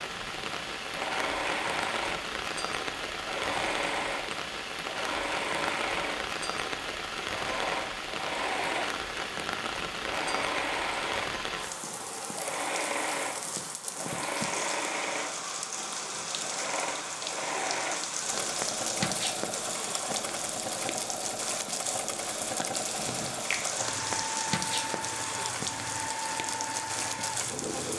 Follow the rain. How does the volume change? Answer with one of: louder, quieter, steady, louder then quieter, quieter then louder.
steady.